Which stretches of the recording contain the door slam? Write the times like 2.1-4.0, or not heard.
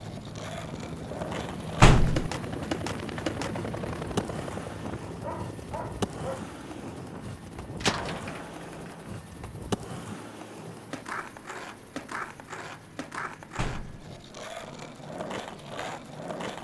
1.8-2.3, 7.8-9.1, 13.6-14.1.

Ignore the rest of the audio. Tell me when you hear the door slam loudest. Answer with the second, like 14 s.
2 s.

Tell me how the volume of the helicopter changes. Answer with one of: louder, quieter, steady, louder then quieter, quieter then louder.
quieter.